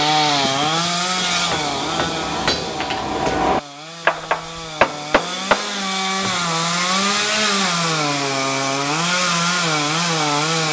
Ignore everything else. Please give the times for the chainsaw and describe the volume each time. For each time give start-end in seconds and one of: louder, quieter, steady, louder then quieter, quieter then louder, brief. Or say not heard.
0.0-10.6 quieter then louder.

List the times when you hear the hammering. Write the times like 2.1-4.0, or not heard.
1.1-6.5.